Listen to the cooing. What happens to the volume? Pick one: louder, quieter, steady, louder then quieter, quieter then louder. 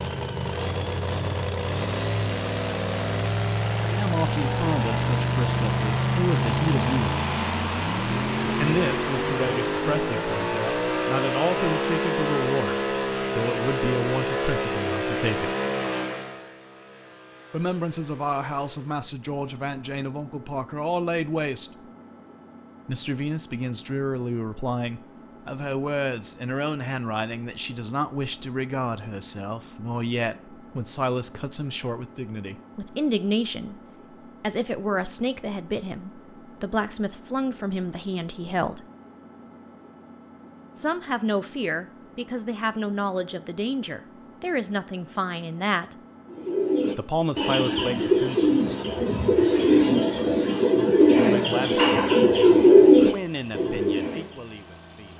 louder.